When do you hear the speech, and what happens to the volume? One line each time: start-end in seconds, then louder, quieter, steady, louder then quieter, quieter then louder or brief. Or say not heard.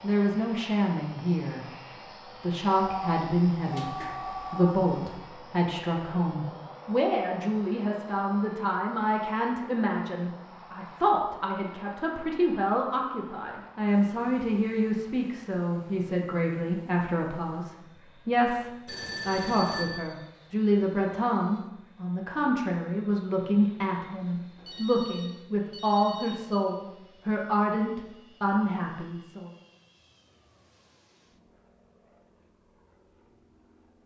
0.0-1.6 brief
2.2-29.5 steady.